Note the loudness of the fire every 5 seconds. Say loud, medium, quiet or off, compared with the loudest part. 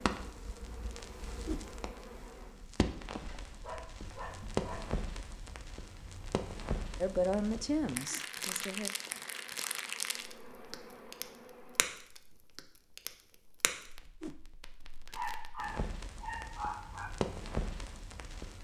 loud, loud, medium, loud.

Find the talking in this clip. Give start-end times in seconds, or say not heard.
7.0-8.9.